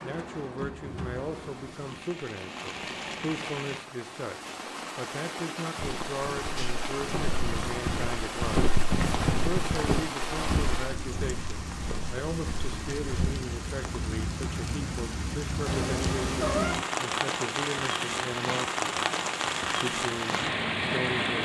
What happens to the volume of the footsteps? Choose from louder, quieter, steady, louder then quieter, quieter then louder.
louder then quieter.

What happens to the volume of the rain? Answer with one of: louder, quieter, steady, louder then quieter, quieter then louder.
louder.